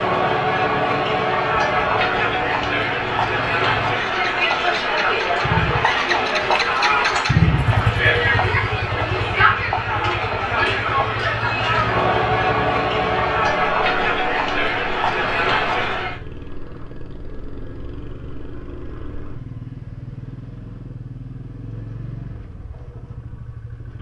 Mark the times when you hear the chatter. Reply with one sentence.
You can hear the chatter from 0.0 to 16.2 s.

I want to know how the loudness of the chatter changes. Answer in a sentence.
The volume of the chatter stays about the same.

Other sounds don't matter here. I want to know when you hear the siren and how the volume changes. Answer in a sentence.
You can't hear the siren here.